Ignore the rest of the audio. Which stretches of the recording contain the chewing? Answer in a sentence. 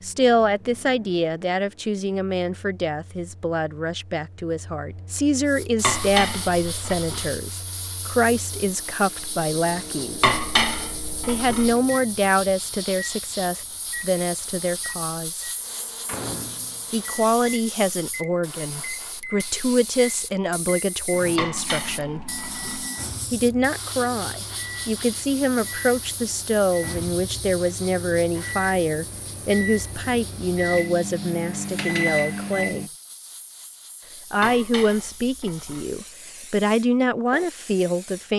The chewing can't be heard in this clip.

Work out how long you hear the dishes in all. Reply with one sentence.
The dishes can be heard for 6 seconds in total.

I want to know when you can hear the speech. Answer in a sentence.
The speech can be heard from 0.0 to 10.3 s, from 11.2 to 15.4 s, from 16.9 to 22.2 s, from 23.3 to 32.9 s and from 34.3 to 38.3 s.